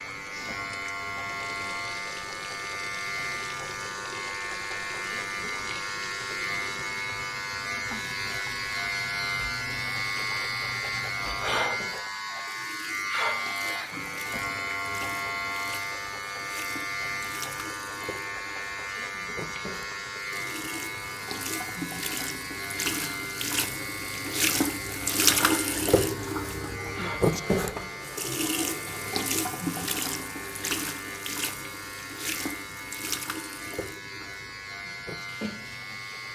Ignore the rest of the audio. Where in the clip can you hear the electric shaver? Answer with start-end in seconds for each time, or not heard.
0.0-36.3.